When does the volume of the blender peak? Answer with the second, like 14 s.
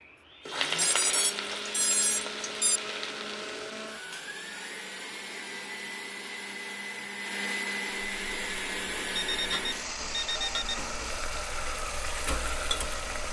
8 s.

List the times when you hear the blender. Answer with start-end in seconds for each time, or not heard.
0.5-13.2.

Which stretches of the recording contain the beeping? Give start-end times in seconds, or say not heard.
0.8-2.8, 9.2-10.8.